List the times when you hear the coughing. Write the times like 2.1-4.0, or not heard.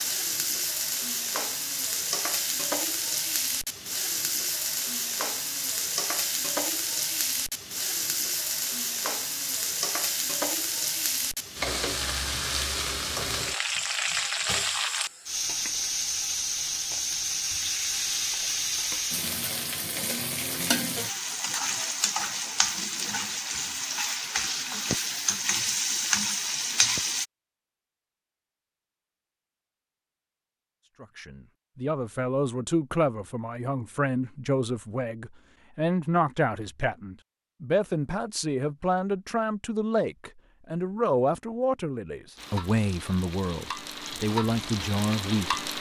not heard.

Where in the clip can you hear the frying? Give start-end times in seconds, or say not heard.
0.0-27.2, 42.4-45.7.